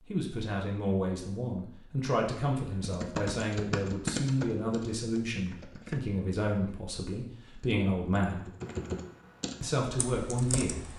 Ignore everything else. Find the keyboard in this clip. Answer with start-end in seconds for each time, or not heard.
2.8-6.0, 7.5-10.9.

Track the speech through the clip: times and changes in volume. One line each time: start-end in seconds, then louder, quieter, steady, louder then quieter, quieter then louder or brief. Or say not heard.
0.1-8.4 steady
9.6-10.8 brief.